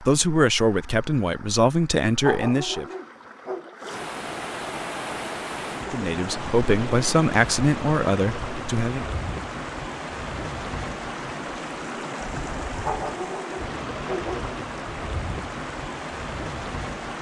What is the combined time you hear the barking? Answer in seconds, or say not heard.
3 s.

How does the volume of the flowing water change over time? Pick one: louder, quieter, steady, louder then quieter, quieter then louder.
louder.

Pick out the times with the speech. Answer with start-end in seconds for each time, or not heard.
0.0-2.9, 5.8-9.1.